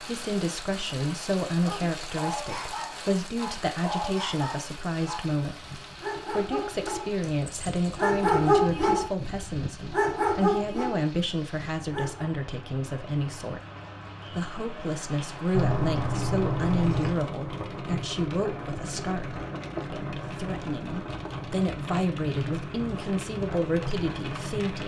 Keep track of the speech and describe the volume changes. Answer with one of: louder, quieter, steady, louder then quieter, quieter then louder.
steady.